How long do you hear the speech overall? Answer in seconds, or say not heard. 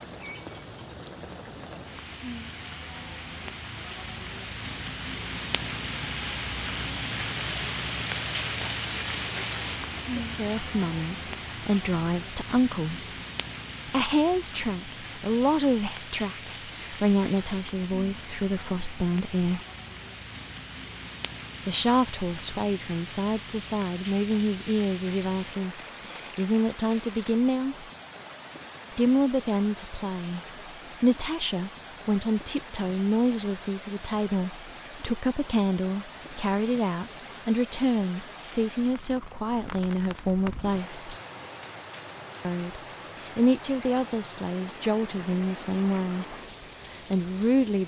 32 s.